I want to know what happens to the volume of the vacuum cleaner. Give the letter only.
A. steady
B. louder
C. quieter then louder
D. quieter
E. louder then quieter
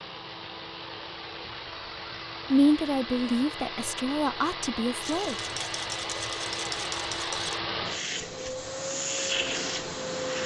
B.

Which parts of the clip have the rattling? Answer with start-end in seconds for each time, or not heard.
5.0-7.6.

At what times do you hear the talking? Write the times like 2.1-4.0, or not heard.
2.5-5.3.